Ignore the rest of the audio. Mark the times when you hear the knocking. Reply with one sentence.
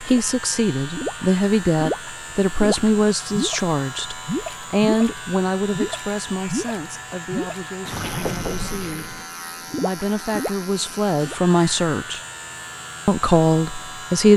The knocking can be heard from 8.1 to 8.6 s.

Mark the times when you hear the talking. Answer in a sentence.
The talking can be heard from 0.0 to 9.2 s, from 9.8 to 12.2 s and from 13.1 to 14.3 s.